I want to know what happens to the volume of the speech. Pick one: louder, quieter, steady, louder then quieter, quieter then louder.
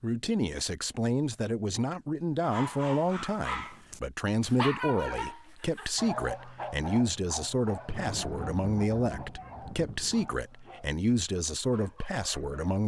steady.